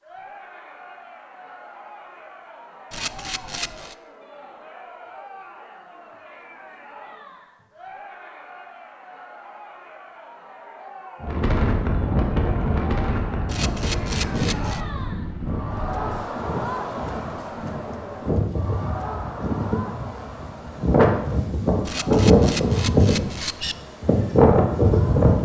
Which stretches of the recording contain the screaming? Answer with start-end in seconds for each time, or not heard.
not heard.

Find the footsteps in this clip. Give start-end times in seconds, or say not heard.
not heard.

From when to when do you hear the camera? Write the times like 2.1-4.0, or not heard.
2.9-4.0, 13.4-14.8, 21.9-23.8.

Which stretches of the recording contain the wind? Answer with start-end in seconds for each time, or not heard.
11.2-25.4.